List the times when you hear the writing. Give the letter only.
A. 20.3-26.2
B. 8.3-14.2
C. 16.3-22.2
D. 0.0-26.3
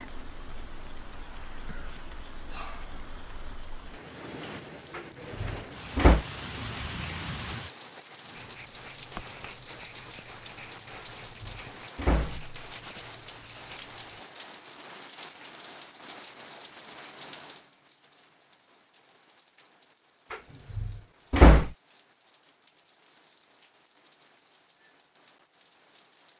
B.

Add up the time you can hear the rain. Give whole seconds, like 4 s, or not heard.
26 s.